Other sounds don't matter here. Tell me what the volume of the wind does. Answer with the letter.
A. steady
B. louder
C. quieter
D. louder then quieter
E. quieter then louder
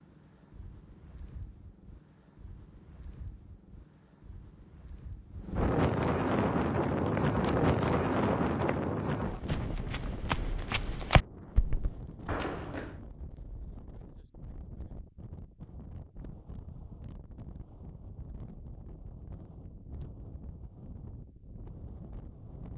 D.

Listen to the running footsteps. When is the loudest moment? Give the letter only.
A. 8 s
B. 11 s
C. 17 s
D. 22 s
B.